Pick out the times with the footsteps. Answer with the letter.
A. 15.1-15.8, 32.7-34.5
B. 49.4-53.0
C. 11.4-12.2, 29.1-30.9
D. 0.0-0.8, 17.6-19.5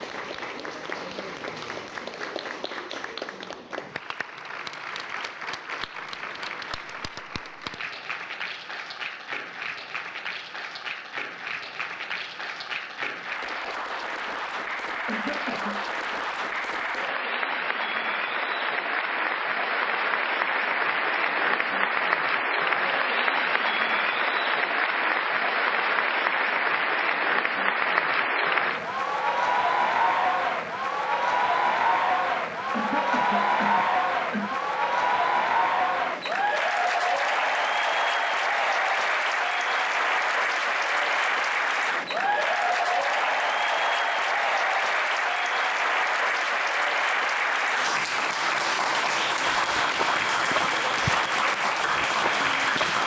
B.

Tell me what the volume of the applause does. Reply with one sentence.
The volume of the applause goes up.